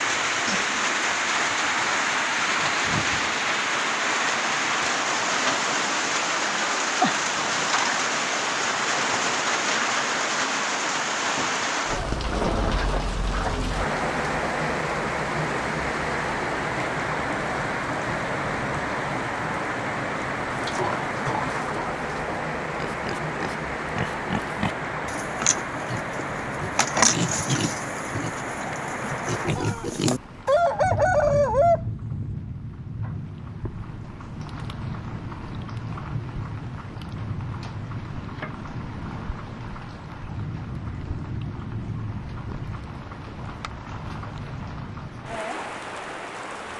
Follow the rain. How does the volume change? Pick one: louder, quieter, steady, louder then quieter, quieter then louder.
quieter.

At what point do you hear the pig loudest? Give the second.
27 s.